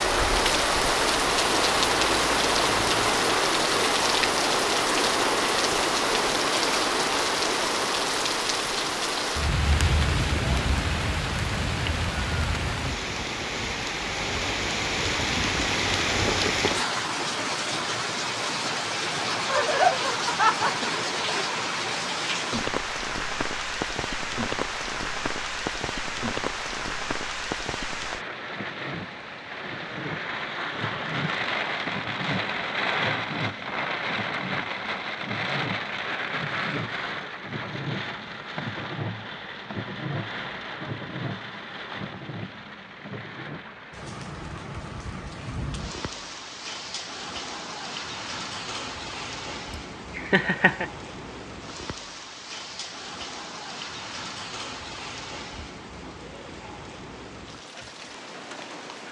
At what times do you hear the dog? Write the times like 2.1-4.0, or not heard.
not heard.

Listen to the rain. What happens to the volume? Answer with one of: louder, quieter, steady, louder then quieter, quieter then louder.
quieter.